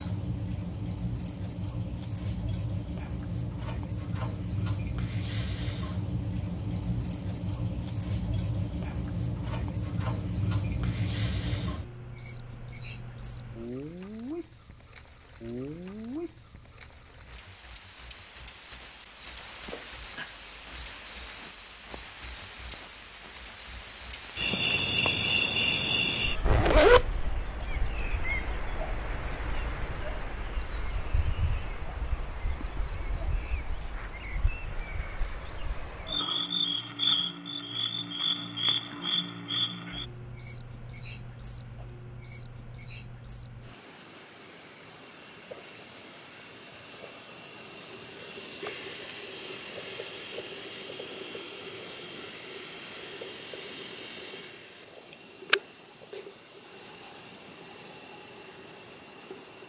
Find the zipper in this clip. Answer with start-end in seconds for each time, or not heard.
26.4-27.1.